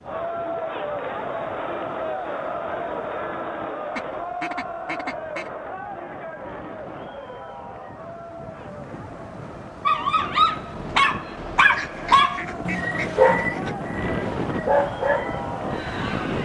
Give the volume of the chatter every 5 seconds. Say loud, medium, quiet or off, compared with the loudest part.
loud, medium, medium, loud.